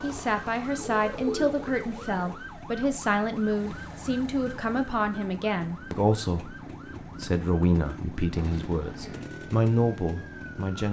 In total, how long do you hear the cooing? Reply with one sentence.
You can hear the cooing for 2 seconds altogether.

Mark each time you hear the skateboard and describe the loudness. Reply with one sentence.
The skateboard can't be heard in this clip.